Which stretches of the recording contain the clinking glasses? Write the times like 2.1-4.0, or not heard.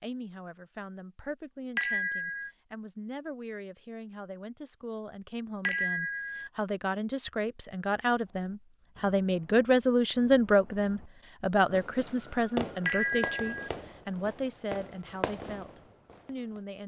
1.8-2.5, 5.6-6.5, 12.8-13.7.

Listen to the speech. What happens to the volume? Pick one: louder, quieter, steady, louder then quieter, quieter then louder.
louder then quieter.